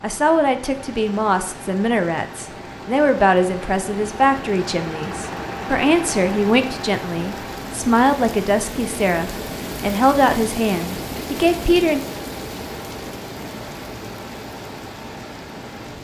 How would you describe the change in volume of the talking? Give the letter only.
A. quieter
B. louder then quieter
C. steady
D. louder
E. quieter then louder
C.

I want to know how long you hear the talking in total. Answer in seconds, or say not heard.
12 s.